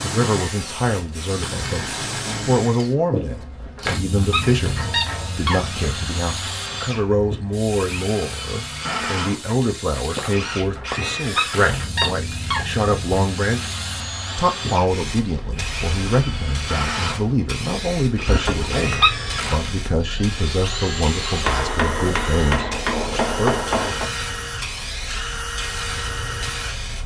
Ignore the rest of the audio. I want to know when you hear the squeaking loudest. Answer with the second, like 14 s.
19 s.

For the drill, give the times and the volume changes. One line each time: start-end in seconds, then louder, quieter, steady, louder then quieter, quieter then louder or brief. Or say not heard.
0.0-26.9 steady.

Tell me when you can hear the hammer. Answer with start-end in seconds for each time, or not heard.
4.4-5.4, 10.2-12.2, 21.4-24.1.